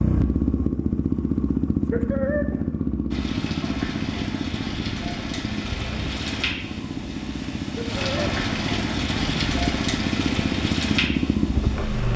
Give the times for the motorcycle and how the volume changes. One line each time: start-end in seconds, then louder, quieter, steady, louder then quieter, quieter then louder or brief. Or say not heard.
0.0-12.1 quieter then louder.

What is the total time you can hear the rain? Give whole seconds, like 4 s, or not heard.
9 s.